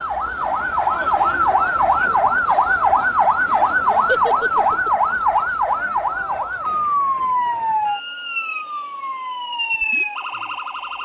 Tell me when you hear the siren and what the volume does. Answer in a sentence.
The siren can be heard from 0.0 to 11.0 s, getting quieter.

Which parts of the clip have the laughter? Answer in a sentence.
The laughter can be heard from 4.0 to 4.9 s.